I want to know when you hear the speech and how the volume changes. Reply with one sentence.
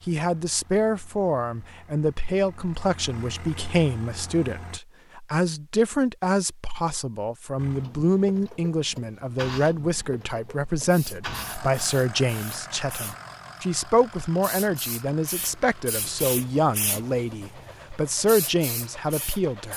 You can hear the speech from 0.1 to 19.7 s, at a steady volume.